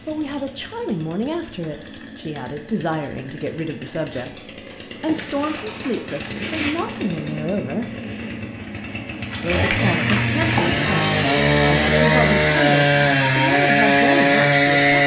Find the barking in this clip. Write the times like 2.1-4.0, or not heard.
not heard.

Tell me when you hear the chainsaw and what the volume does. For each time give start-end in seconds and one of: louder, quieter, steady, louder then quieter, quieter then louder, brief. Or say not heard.
0.0-15.0 louder.